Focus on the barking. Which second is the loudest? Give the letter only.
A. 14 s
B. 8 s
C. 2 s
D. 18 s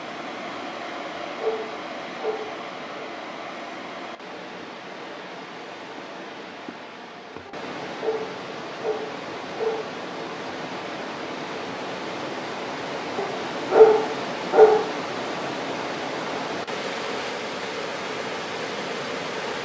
A.